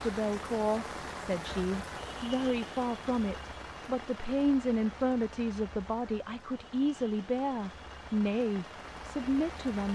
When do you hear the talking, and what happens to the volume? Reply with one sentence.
The talking can be heard from 0.0 to 9.9 s, at a steady volume.